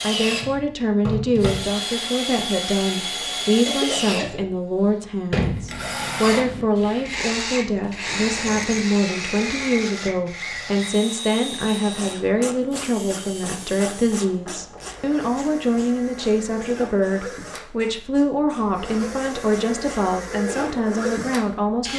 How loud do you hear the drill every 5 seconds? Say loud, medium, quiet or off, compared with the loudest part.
loud, loud, medium, medium, loud.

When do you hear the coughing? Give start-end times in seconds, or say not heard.
3.6-4.5.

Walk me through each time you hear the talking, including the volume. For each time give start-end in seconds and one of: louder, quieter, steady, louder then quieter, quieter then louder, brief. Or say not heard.
0.0-21.9 steady.